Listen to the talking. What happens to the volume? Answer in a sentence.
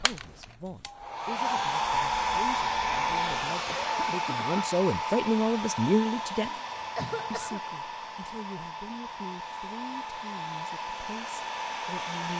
The volume of the talking goes up, then down.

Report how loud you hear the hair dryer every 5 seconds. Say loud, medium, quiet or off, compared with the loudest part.
loud, medium, medium.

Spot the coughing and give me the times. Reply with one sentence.
The coughing can be heard from 3.6 to 4.7 s and from 6.5 to 7.6 s.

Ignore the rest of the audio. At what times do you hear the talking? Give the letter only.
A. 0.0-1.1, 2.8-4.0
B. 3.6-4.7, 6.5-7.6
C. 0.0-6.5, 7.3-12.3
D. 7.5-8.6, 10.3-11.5
C.